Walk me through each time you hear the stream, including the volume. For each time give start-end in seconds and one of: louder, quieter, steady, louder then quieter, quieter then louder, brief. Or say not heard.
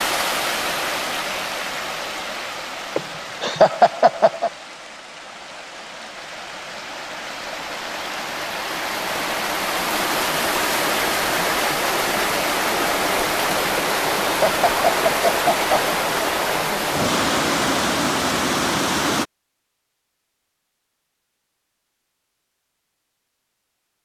0.0-19.2 quieter then louder.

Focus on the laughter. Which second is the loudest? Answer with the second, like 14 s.
4 s.